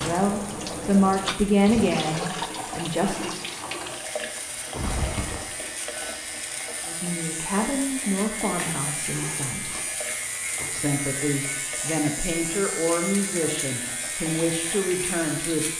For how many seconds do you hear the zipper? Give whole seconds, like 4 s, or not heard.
2 s.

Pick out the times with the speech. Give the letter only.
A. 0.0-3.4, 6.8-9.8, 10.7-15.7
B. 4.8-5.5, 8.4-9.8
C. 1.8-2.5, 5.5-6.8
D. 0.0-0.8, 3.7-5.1
A.